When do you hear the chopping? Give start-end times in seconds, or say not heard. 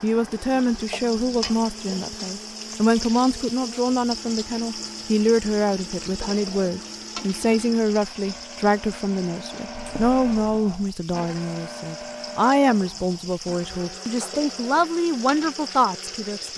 not heard.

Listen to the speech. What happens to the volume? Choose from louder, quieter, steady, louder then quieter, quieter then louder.
steady.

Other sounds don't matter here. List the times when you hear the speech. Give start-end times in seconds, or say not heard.
0.0-16.5.